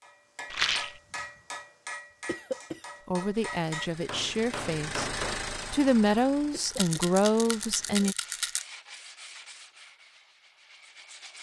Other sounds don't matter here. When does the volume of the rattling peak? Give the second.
1 s.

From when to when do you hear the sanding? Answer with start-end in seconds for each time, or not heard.
8.2-11.3.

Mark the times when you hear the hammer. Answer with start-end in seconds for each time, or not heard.
0.0-5.5.